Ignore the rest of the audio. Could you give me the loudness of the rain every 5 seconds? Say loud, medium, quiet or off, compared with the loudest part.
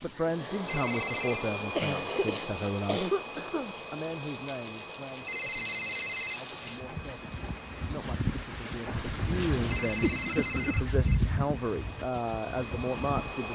medium, loud, loud.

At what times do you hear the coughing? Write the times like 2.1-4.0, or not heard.
1.8-3.8, 9.8-10.8.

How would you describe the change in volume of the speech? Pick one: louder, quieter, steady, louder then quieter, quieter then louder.
quieter then louder.